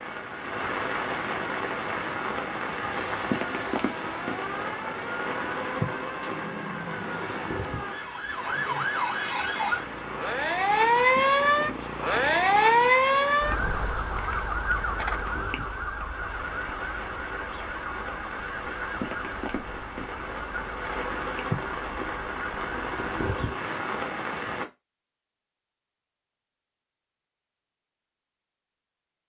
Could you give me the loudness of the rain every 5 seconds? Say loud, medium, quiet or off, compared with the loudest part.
loud, loud, medium, medium, loud, off.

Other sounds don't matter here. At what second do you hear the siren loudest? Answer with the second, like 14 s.
13 s.